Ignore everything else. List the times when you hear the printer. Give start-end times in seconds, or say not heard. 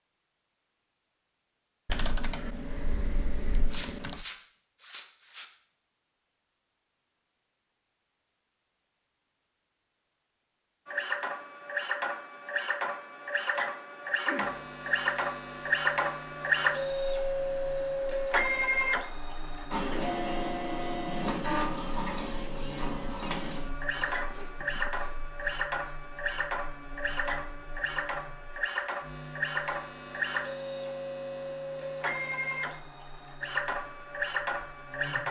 10.8-35.2.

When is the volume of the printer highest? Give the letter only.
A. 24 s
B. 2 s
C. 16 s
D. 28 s
C.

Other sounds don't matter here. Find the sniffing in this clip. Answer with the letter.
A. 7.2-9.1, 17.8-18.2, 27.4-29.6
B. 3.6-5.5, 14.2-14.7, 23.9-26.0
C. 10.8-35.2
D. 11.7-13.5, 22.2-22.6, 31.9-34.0
B.